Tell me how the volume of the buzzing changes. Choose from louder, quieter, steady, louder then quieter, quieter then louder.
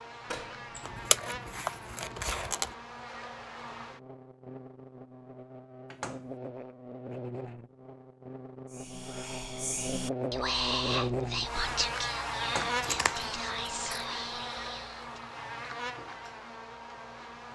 louder then quieter.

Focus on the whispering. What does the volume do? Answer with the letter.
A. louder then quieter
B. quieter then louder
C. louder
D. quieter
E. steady
A.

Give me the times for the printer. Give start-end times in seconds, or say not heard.
not heard.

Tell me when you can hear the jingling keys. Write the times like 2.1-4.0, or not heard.
not heard.